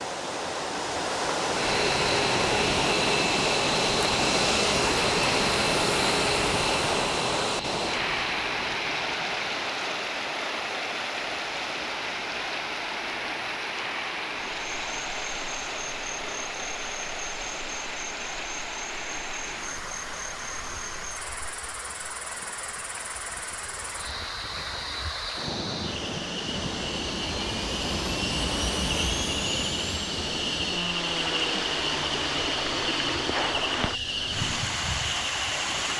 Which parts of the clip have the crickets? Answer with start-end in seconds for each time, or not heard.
14.5-35.9.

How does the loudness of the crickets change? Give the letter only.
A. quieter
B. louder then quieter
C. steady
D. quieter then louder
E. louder
E.